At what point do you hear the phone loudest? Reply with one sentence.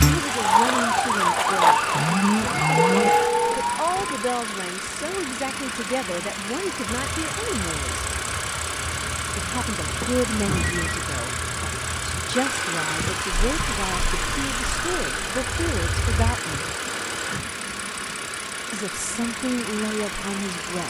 The loudest moment of the phone is at 3 seconds.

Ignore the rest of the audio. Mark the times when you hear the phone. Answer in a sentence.
The phone can be heard from 2.5 to 4.2 s, from 9.9 to 11.1 s and from 16.8 to 17.6 s.